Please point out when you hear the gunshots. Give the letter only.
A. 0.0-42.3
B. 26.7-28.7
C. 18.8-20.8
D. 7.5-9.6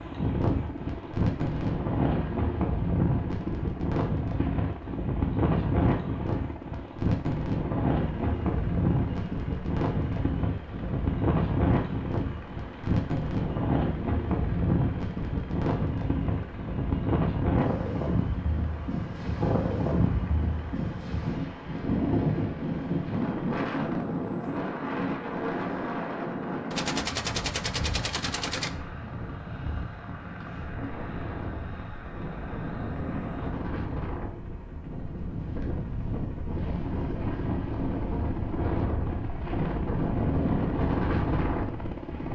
B.